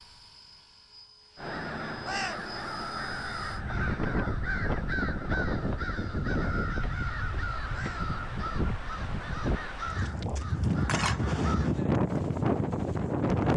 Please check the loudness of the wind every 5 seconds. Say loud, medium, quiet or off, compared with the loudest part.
medium, medium, loud.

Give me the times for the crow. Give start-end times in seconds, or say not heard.
1.4-11.8.